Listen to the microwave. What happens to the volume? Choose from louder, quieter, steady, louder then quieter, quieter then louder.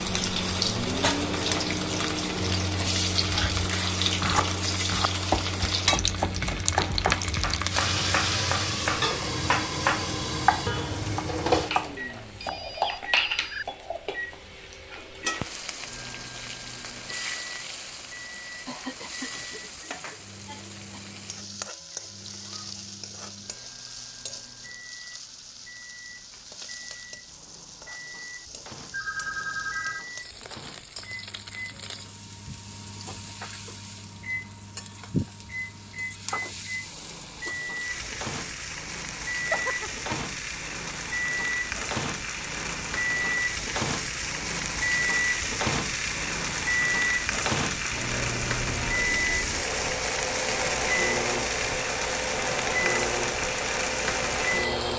quieter then louder.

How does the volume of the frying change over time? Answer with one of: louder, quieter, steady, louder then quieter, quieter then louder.
quieter then louder.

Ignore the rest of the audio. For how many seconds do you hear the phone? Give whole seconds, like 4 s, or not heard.
3 s.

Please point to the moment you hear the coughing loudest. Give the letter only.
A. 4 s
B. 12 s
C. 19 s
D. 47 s
C.